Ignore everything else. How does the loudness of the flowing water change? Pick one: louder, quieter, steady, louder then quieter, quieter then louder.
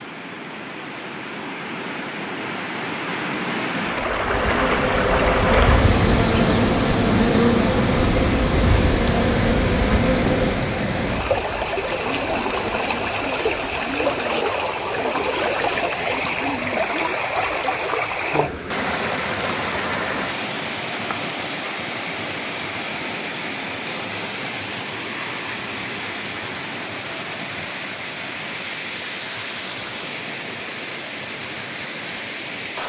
quieter.